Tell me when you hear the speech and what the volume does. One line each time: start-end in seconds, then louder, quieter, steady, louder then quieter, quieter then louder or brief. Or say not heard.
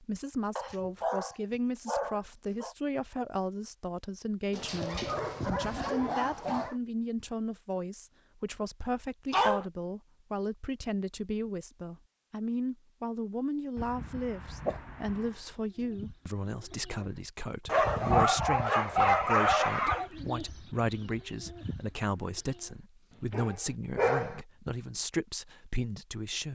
0.0-26.4 steady.